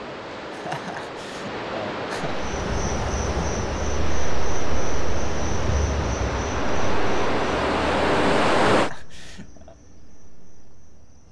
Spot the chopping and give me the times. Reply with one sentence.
You can't hear the chopping here.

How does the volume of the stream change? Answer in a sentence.
The volume of the stream goes up.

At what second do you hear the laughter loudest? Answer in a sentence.
The volume of the laughter peaks at 1 second.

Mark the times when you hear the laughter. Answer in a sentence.
You can hear the laughter from 0.5 to 2.4 s and from 8.7 to 9.8 s.